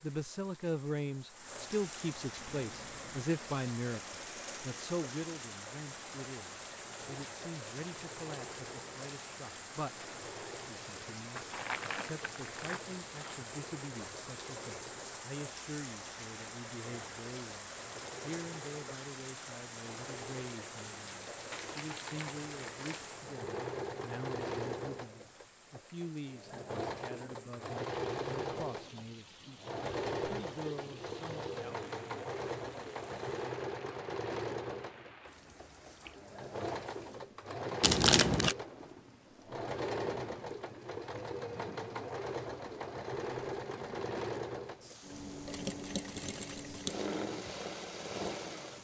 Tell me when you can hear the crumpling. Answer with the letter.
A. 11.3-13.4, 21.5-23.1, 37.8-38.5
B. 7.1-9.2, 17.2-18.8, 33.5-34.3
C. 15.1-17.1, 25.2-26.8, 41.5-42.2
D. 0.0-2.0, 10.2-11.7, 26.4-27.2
A.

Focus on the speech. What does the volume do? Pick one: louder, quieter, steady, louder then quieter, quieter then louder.
quieter.